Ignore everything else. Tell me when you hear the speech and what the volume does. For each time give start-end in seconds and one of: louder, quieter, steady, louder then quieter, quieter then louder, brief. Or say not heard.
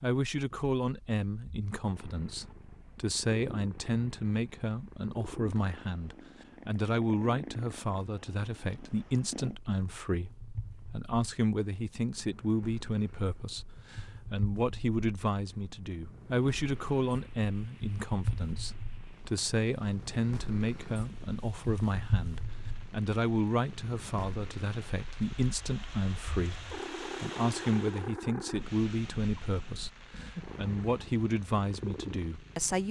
0.0-32.8 steady.